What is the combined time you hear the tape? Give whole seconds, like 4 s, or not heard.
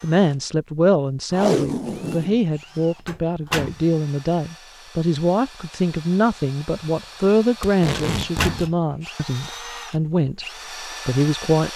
2 s.